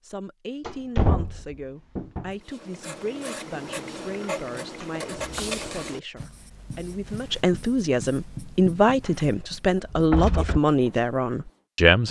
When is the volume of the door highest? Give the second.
1 s.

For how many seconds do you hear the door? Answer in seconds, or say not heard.
4 s.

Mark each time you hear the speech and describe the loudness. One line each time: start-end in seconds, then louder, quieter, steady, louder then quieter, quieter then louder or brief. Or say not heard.
0.0-12.0 louder.